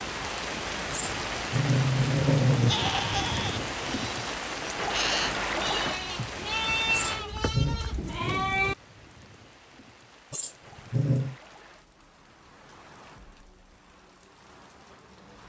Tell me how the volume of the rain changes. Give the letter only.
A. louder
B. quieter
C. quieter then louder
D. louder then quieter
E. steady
B.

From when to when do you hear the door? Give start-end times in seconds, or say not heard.
not heard.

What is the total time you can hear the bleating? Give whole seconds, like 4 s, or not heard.
6 s.